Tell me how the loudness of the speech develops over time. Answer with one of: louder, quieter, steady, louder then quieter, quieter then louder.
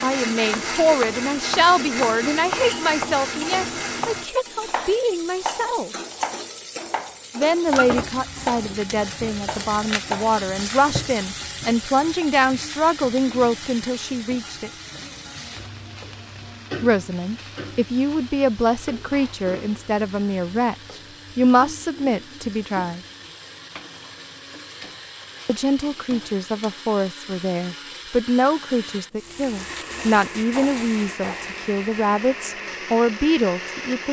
steady.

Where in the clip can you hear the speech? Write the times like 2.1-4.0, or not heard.
0.0-5.9, 7.3-14.7, 16.8-23.0, 25.4-34.0.